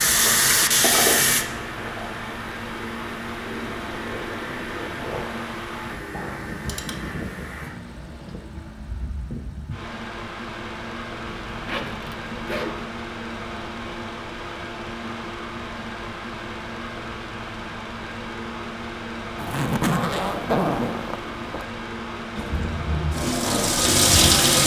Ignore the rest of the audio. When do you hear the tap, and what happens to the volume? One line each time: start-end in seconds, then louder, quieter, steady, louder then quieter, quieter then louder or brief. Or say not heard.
0.0-7.7 quieter
22.4-24.6 brief.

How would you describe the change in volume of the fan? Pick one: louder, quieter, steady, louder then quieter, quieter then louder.
steady.